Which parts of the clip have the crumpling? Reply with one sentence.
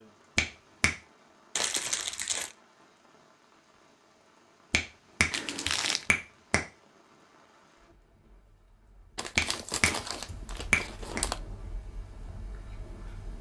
The crumpling can be heard from 1.6 to 2.5 s, from 5.3 to 6.1 s and from 9.2 to 11.4 s.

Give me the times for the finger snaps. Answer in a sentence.
You can hear the finger snaps from 0.3 to 0.9 s, from 4.7 to 6.6 s and from 9.3 to 11.2 s.